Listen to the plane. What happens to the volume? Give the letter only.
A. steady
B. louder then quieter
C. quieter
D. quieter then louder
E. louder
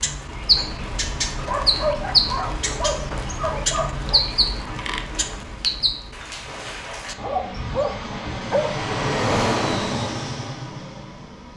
B.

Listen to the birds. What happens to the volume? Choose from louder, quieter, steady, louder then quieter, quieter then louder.
quieter.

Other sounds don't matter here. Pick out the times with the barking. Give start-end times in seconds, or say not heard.
1.4-4.2, 7.2-8.7.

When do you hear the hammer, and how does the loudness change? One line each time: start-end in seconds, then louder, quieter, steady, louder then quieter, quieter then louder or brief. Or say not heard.
not heard.